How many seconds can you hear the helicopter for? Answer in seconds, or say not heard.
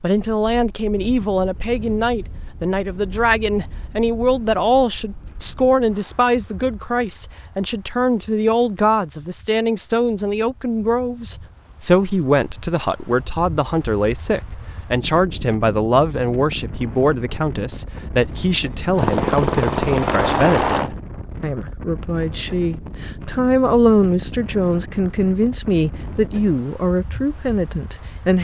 2 s.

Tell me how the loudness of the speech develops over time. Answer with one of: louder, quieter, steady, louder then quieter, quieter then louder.
steady.